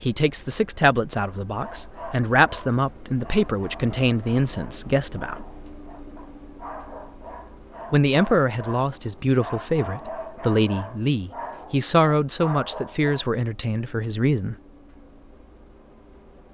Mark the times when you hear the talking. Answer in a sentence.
You can hear the talking from 0.0 to 5.5 s and from 7.9 to 14.6 s.